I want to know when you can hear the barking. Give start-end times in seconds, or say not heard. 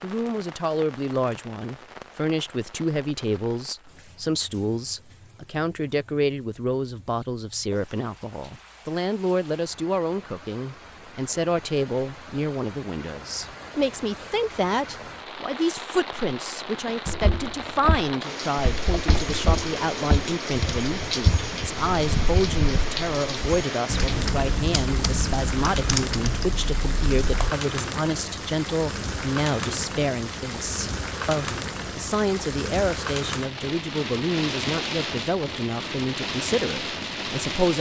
not heard.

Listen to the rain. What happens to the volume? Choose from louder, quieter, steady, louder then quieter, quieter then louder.
louder.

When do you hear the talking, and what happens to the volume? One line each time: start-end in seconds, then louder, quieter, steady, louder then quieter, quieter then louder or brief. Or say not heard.
0.0-37.7 steady.